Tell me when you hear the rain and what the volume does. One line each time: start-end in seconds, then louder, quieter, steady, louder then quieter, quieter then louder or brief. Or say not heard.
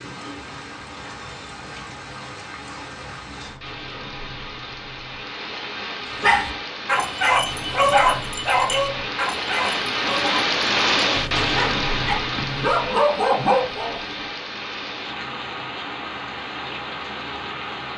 0.0-17.9 louder then quieter.